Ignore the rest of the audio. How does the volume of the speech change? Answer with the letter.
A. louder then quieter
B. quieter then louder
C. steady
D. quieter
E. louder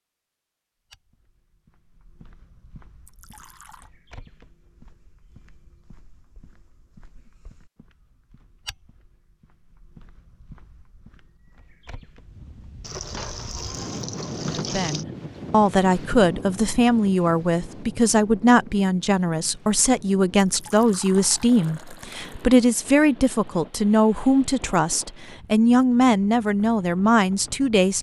C.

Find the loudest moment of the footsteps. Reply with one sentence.
The loudest moment of the footsteps is at 9 seconds.